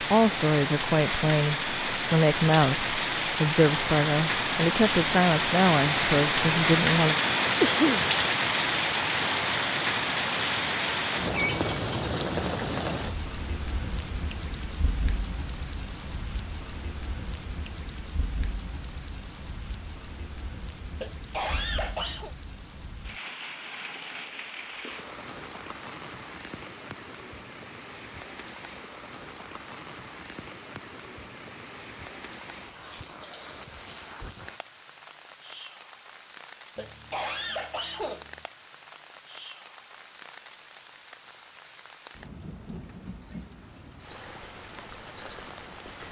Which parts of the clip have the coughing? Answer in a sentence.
The coughing can be heard from 7.6 to 8.1 s, from 20.9 to 22.4 s and from 36.8 to 38.5 s.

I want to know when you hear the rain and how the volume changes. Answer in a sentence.
You can hear the rain from 0.0 to 46.0 s, getting quieter.